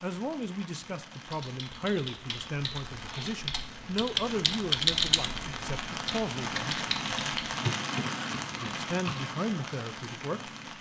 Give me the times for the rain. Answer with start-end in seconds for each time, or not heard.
0.0-10.7.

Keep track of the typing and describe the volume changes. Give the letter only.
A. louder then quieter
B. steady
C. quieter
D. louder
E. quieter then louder
A.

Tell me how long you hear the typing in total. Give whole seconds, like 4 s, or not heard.
8 s.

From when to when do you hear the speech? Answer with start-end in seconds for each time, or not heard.
0.0-6.8, 8.6-10.5.